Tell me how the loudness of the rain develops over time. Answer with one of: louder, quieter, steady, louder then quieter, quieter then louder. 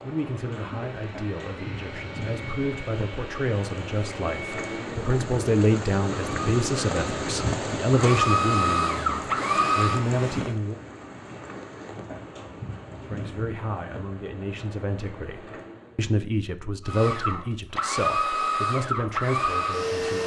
louder then quieter.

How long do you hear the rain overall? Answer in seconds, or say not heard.
16 s.